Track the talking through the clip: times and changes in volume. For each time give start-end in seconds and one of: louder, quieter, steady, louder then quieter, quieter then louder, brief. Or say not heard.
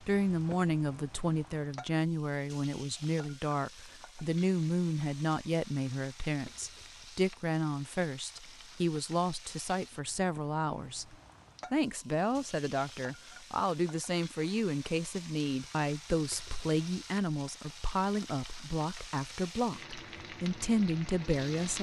0.1-21.7 steady.